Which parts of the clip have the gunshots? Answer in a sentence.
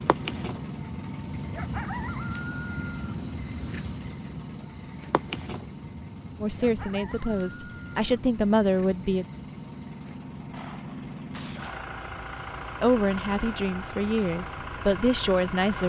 The gunshots can be heard from 10.5 to 11.8 s.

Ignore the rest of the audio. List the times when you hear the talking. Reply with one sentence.
You can hear the talking from 6.4 to 9.2 s and from 12.8 to 15.8 s.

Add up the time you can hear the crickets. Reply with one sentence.
You can hear the crickets for 16 seconds altogether.